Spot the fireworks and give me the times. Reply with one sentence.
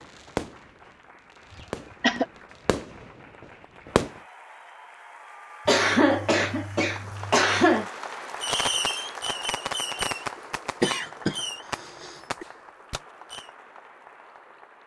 You can hear the fireworks from 0.0 to 4.2 s and from 8.4 to 13.5 s.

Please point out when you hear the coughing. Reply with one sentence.
The coughing can be heard from 1.6 to 2.2 s, from 5.7 to 7.8 s and from 10.8 to 12.4 s.